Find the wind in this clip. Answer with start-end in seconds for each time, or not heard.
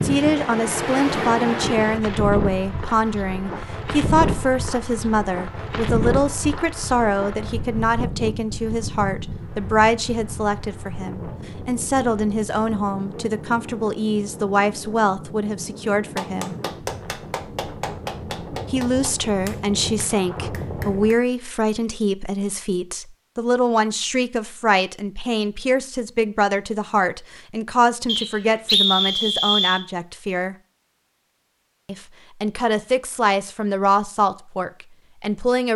0.0-21.1.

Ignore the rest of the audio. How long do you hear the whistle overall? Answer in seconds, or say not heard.
2 s.